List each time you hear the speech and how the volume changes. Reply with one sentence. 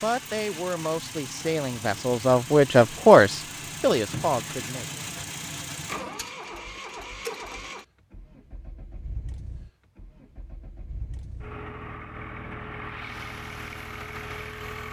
The speech can be heard from 0.0 to 4.8 s, getting louder then quieter.